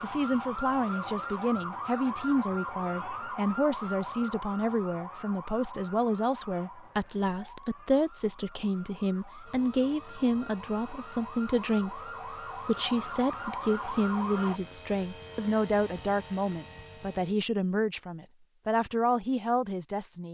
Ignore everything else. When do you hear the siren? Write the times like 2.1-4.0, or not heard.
0.0-14.6.